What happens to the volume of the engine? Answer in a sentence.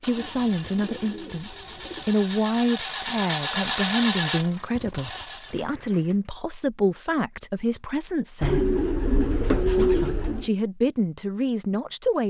The loudness of the engine goes up, then down.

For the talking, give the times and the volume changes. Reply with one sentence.
The talking can be heard from 0.0 to 8.7 s, at a steady volume; and briefly from 9.8 to 12.2 s.